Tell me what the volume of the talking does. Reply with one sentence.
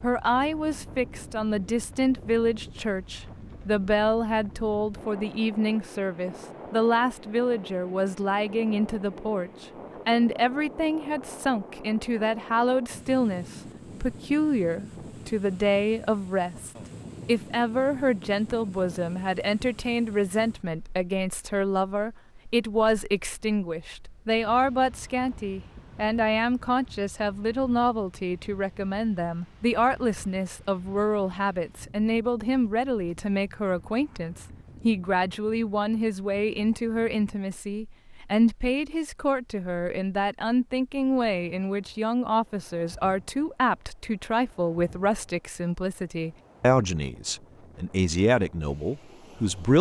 The loudness of the talking stays about the same.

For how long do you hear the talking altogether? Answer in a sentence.
You can hear the talking for 50 seconds altogether.